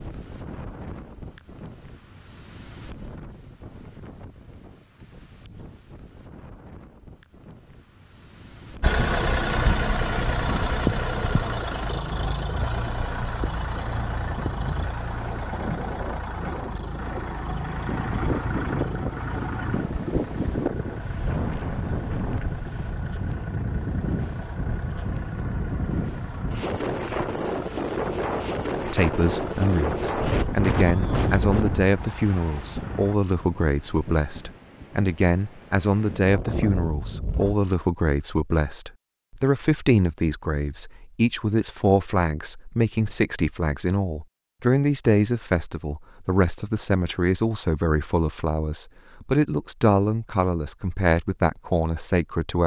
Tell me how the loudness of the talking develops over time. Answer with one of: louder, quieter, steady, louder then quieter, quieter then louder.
steady.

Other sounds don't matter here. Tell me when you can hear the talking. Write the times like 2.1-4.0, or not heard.
28.9-52.6.